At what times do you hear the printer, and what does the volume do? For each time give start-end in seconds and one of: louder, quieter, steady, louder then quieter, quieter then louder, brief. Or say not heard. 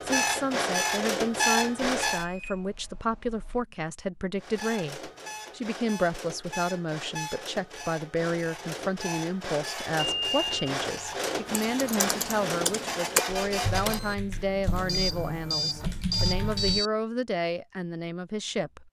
0.0-2.2 brief
4.3-16.9 louder then quieter.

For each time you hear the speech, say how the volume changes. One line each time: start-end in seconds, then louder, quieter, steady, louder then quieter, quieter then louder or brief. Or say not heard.
0.0-18.8 steady.